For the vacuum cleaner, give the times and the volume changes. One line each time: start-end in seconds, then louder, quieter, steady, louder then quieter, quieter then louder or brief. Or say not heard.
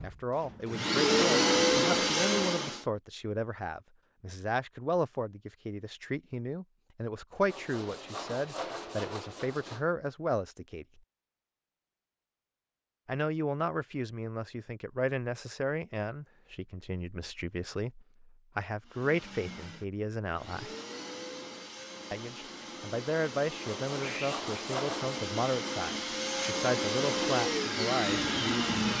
0.0-2.9 brief
18.9-28.9 louder.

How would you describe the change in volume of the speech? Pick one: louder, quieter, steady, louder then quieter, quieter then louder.
steady.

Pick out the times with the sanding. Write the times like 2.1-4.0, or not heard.
7.5-9.8, 23.6-25.2.